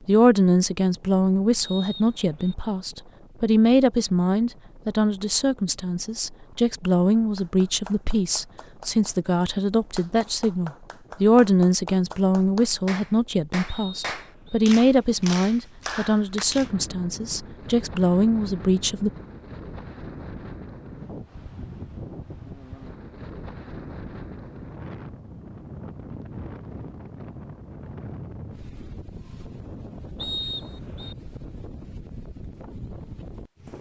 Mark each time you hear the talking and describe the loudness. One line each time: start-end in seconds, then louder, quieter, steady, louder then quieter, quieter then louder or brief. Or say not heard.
0.1-19.1 steady.